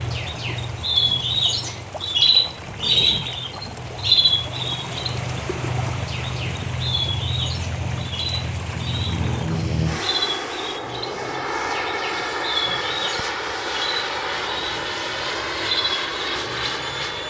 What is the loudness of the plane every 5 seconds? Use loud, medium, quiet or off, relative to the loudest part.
medium, loud, loud, loud.